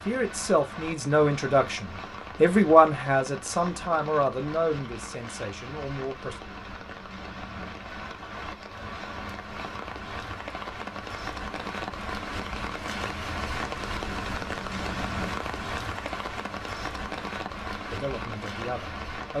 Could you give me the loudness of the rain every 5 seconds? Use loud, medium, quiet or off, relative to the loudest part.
medium, medium, loud, loud.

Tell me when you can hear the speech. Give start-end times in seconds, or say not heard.
0.1-6.3, 17.9-19.3.